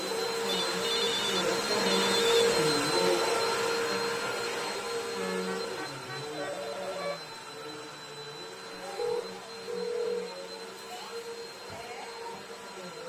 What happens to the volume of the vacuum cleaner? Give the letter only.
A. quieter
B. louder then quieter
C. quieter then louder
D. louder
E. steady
A.